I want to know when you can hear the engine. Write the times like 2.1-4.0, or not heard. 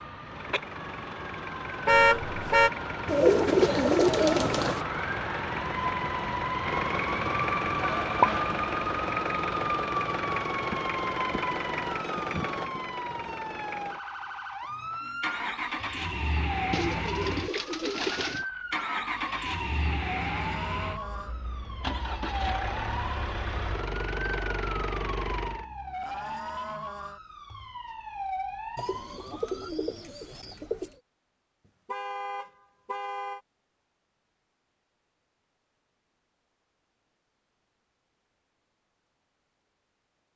0.1-25.6.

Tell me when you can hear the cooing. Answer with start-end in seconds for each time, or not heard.
3.0-4.8, 16.7-18.4, 28.8-30.9.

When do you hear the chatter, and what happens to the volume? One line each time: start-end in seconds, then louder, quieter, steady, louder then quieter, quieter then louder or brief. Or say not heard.
not heard.